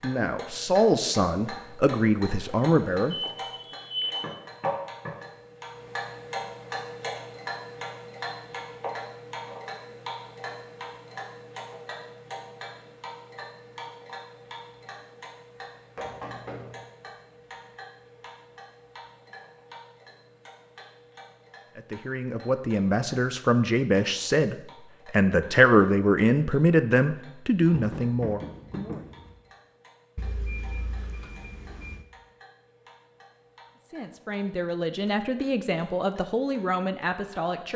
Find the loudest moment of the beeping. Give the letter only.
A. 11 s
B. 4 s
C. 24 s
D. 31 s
B.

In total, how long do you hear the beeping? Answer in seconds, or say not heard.
4 s.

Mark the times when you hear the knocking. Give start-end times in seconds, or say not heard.
4.2-5.2, 15.9-16.9, 27.6-29.3.